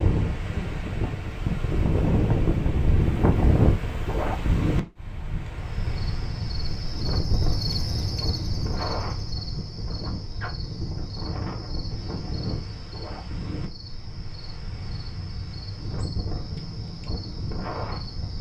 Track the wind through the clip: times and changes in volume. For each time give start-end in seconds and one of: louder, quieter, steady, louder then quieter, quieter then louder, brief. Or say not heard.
0.0-18.3 quieter.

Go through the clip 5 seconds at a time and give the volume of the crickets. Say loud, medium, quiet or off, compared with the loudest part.
off, loud, medium, medium.